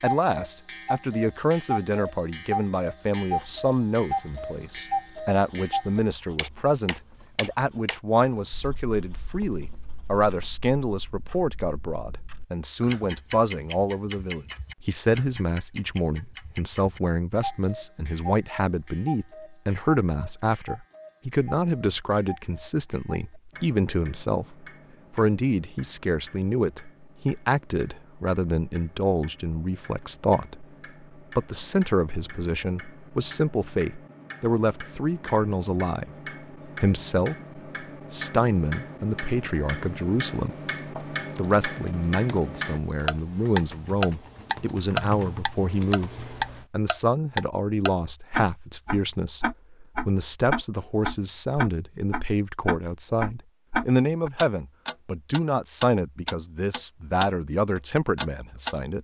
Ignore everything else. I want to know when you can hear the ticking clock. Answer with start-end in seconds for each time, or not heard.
0.0-58.8.